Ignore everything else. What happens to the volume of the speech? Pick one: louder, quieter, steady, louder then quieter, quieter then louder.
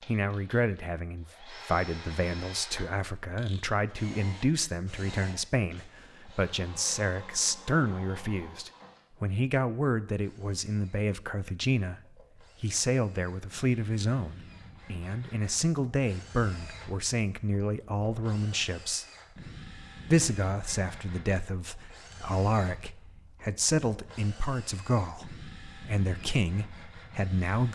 steady.